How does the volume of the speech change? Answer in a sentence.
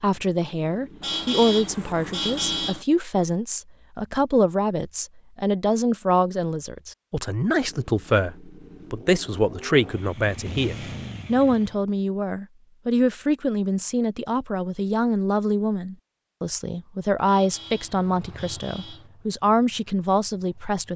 The loudness of the speech stays about the same.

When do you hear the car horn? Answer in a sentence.
You can hear the car horn from 1.0 to 2.9 s and from 17.2 to 19.1 s.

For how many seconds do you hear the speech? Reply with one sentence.
The speech can be heard for 21 seconds in total.